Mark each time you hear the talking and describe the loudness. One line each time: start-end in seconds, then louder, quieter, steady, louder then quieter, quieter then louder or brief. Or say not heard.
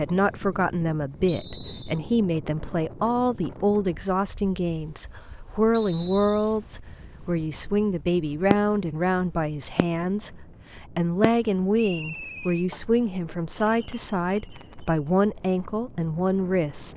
0.0-16.9 steady.